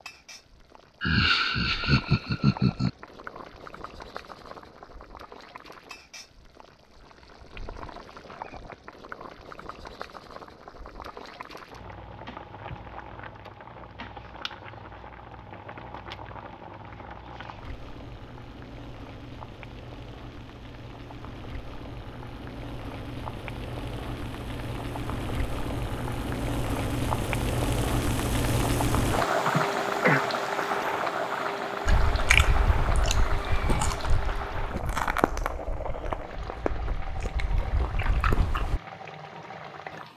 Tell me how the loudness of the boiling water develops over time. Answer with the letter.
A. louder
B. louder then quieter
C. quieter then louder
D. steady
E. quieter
B.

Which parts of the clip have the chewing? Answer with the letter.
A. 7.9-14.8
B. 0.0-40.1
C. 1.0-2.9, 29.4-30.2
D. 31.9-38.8
D.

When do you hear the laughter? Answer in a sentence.
The laughter can be heard from 1.0 to 2.9 s and from 29.4 to 30.2 s.